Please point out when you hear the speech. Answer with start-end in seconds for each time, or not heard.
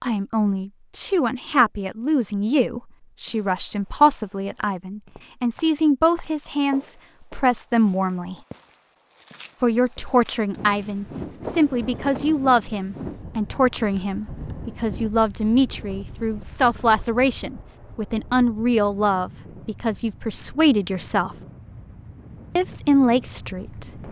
0.0-8.3, 9.6-21.4, 22.6-23.9.